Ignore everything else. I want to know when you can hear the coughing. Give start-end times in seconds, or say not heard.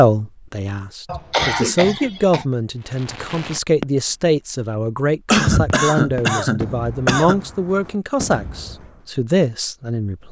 1.1-2.5, 5.3-7.4.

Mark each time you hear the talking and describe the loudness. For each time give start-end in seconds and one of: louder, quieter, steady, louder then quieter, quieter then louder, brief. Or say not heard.
0.0-10.2 steady.